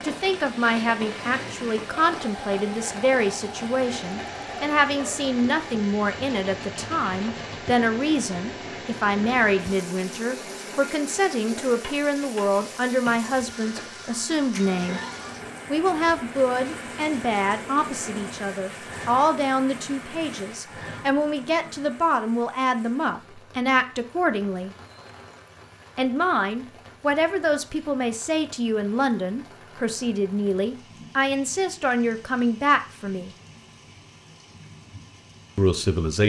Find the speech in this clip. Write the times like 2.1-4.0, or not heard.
0.0-15.0, 15.7-24.8, 25.9-33.4, 35.5-36.2.